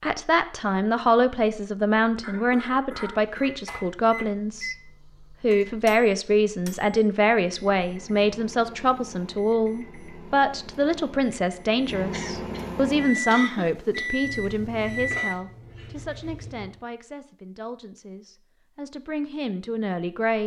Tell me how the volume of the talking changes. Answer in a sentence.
The volume of the talking goes down.